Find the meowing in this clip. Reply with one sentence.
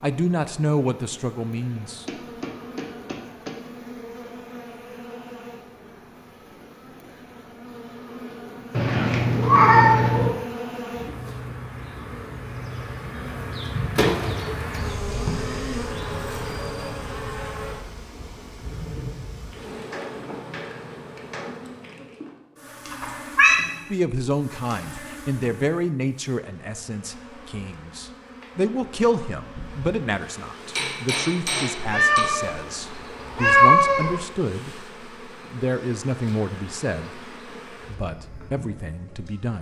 The meowing can be heard from 8.7 to 10.3 s, from 22.9 to 23.6 s, from 31.8 to 32.5 s and from 33.2 to 34.1 s.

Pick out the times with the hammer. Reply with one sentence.
You can hear the hammer from 1.8 to 3.6 s, from 19.9 to 21.8 s and from 30.8 to 32.5 s.